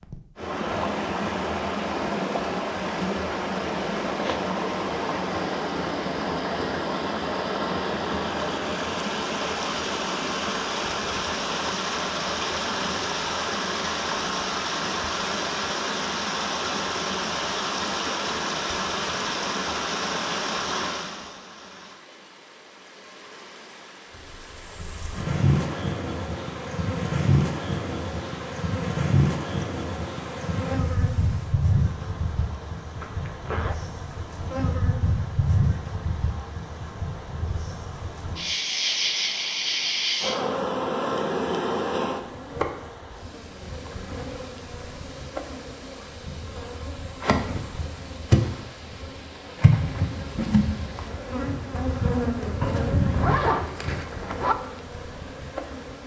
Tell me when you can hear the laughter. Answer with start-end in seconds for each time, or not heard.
not heard.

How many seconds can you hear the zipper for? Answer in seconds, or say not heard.
3 s.